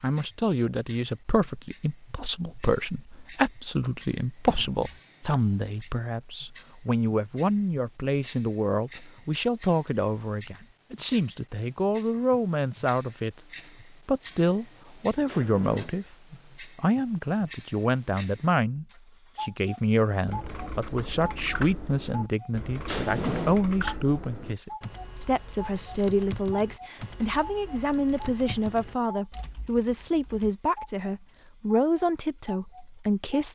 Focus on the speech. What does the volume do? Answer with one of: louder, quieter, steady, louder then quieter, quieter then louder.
steady.